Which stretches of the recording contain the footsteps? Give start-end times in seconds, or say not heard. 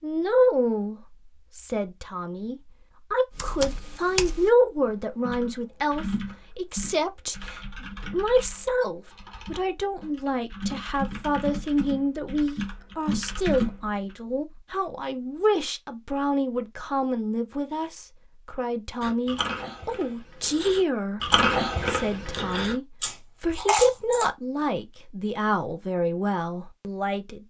not heard.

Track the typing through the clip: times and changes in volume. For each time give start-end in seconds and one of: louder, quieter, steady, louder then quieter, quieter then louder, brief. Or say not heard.
3.3-13.9 quieter then louder.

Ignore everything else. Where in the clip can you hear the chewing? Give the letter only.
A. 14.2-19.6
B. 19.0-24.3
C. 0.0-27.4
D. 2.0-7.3
B.